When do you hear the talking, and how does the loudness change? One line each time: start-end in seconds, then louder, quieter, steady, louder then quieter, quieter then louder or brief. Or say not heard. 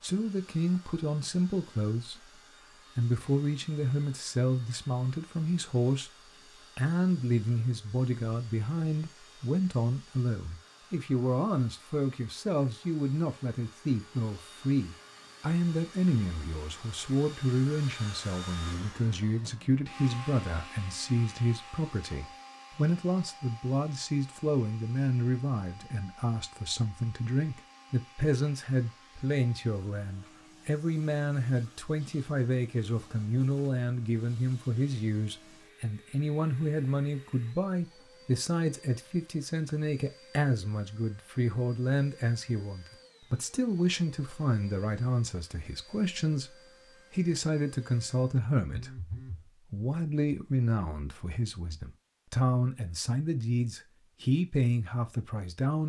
0.0-55.8 steady.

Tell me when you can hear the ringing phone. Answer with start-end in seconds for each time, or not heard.
48.7-49.5.